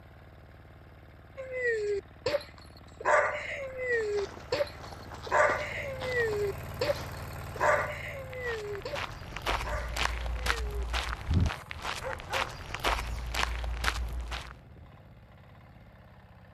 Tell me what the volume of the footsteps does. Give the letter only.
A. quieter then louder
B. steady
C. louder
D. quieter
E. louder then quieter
C.